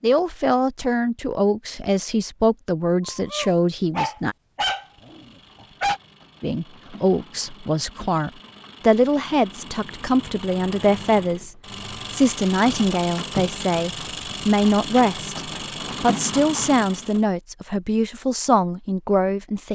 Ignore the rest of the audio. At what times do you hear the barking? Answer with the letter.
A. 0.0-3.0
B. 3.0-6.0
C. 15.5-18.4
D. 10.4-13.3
B.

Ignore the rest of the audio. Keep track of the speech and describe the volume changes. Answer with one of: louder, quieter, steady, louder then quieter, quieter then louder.
steady.